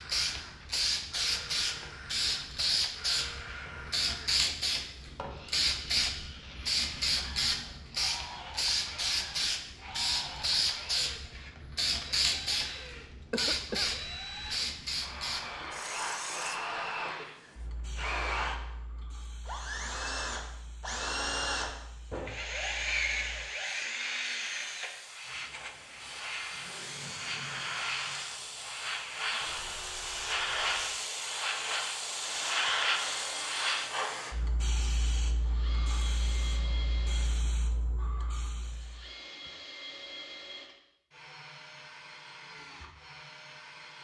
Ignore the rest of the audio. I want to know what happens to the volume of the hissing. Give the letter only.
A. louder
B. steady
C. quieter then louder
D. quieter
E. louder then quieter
C.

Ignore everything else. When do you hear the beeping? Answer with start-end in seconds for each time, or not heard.
not heard.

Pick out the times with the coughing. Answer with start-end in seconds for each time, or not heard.
13.3-13.9.